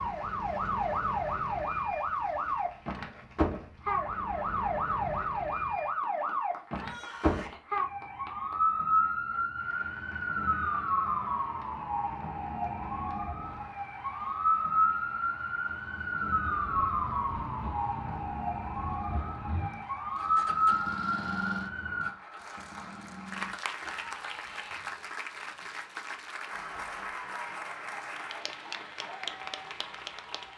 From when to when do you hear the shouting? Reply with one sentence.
You can hear the shouting from 6.6 to 7.6 s and from 23.8 to 24.9 s.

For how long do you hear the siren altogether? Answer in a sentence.
You can hear the siren for 26 seconds altogether.